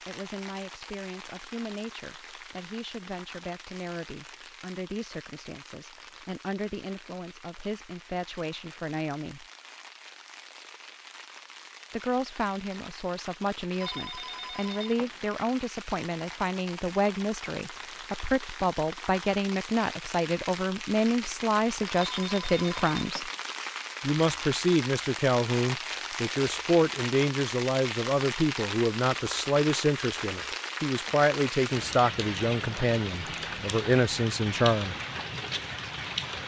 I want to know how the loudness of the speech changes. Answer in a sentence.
The volume of the speech goes up.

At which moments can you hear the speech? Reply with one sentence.
You can hear the speech from 0.1 to 9.4 s, from 11.9 to 23.3 s and from 24.0 to 35.0 s.